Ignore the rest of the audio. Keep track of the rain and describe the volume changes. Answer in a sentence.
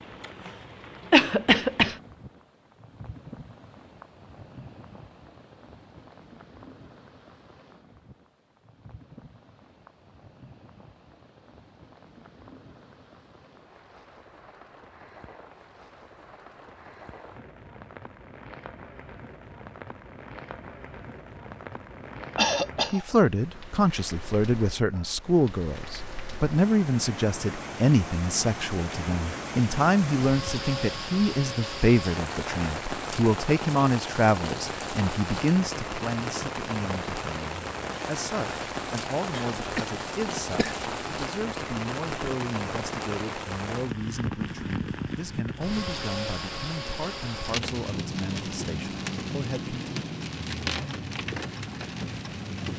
The volume of the rain goes up.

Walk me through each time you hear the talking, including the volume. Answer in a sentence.
You can hear the talking from 22.9 to 49.8 s, getting quieter.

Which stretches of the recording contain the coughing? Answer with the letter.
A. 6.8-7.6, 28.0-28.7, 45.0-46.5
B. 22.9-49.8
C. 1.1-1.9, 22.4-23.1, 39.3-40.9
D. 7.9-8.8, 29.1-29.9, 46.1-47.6
C.